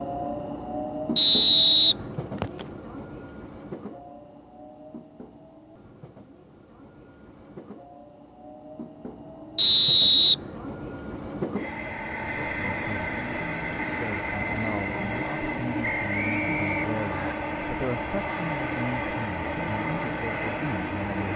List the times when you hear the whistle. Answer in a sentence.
The whistle can be heard from 1.1 to 2.6 s, from 9.6 to 10.3 s and from 15.8 to 17.4 s.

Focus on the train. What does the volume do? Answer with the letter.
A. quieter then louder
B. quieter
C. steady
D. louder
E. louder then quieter
A.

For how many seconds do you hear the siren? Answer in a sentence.
The siren can't be heard in this clip.